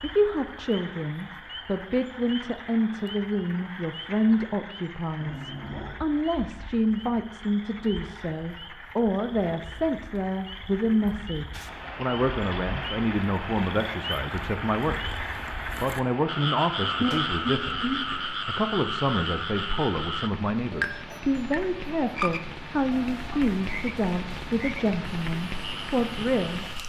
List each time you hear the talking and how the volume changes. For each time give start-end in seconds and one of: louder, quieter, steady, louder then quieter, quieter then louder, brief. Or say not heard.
0.0-26.6 steady.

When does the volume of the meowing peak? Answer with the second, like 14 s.
17 s.